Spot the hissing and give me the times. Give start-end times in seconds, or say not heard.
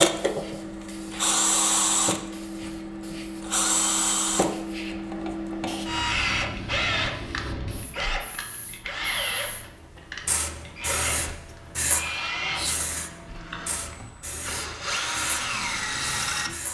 0.0-16.6.